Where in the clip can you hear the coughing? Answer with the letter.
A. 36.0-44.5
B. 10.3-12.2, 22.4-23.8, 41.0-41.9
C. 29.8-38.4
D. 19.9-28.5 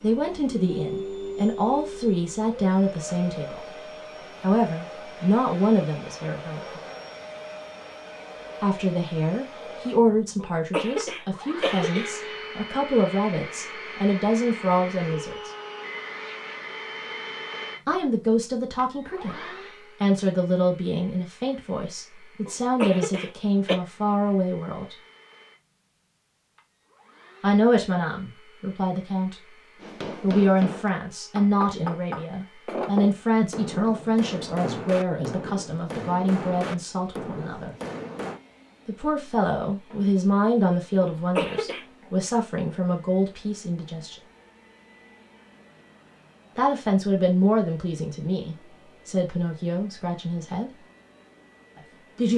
B.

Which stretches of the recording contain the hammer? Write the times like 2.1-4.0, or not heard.
29.8-38.4.